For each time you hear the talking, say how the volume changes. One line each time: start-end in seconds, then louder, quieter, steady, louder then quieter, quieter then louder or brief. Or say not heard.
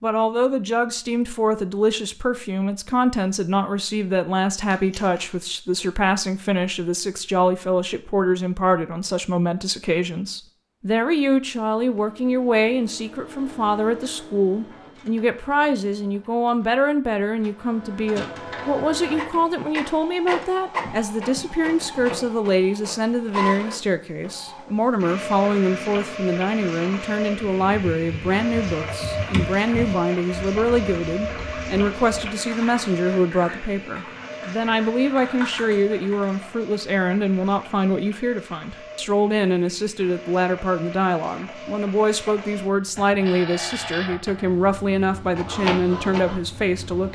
0.0-47.1 steady.